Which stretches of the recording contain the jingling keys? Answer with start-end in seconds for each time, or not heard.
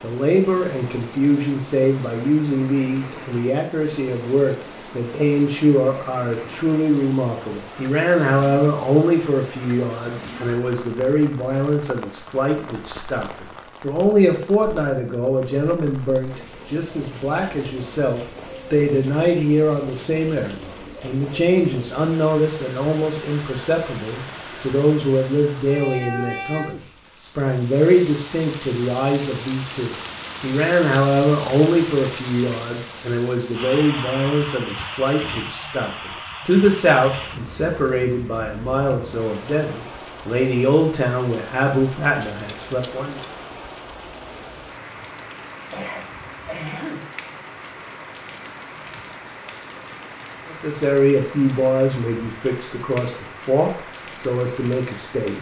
42.2-43.5.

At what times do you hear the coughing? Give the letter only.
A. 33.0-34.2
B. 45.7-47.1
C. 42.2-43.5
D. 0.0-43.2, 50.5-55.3
B.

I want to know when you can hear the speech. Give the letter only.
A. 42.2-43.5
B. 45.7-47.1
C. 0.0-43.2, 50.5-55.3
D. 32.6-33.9
C.